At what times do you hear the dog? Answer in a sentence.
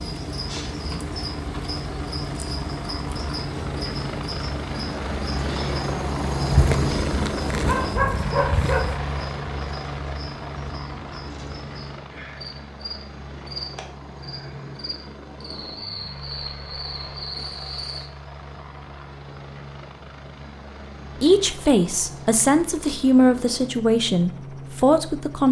The dog can be heard from 6.5 to 9.1 s.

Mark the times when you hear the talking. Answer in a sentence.
The talking can be heard from 21.2 to 25.4 s.